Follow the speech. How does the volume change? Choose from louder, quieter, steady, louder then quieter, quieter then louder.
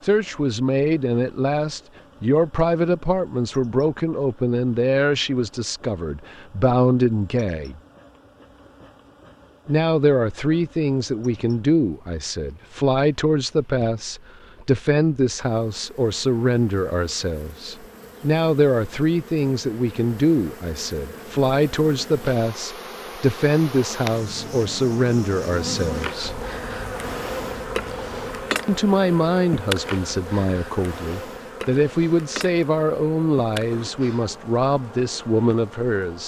steady.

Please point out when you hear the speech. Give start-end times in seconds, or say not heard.
0.0-7.8, 9.7-26.4, 28.6-36.2.